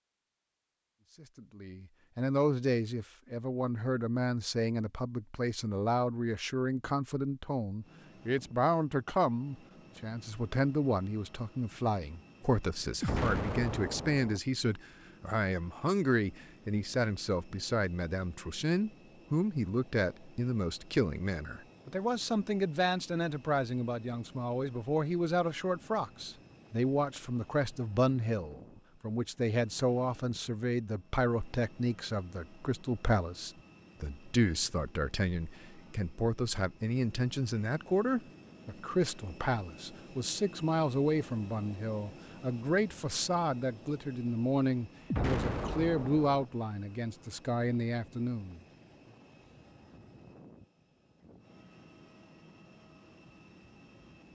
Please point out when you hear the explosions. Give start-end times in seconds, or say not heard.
13.0-14.4, 45.1-46.5.